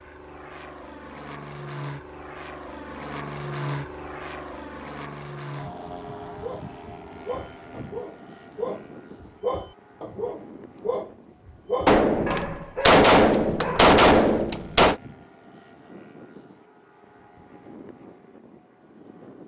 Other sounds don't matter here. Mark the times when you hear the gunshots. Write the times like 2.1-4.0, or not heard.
11.8-14.9.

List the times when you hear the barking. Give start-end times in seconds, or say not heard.
6.4-14.0.